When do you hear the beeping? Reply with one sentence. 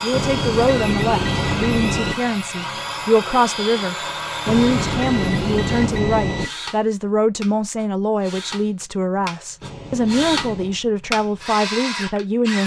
The beeping can be heard from 0.1 to 2.1 s, from 4.5 to 6.5 s and from 9.6 to 10.8 s.